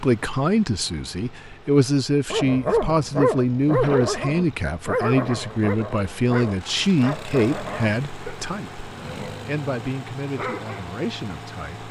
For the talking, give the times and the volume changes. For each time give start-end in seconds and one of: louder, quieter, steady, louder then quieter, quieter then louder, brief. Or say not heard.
0.0-11.8 quieter.